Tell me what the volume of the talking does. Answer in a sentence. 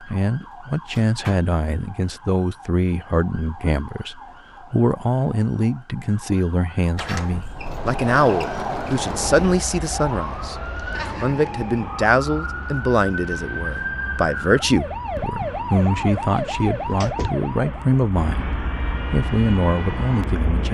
The volume of the talking stays about the same.